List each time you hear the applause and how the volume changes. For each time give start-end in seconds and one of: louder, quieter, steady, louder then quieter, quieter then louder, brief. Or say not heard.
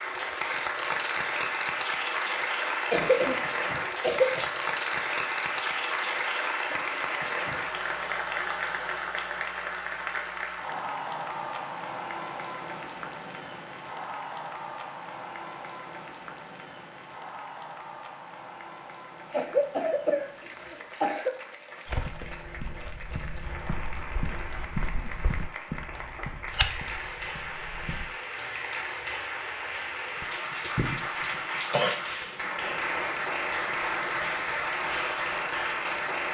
0.0-36.2 quieter then louder.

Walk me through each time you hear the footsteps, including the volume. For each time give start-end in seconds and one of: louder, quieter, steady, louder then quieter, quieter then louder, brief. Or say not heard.
21.9-28.1 louder.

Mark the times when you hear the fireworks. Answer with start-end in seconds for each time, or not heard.
not heard.